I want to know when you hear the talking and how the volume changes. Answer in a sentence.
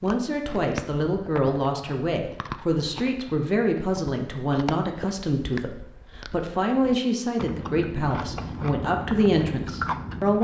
You can hear the talking from 0.0 to 10.3 s, at a steady volume.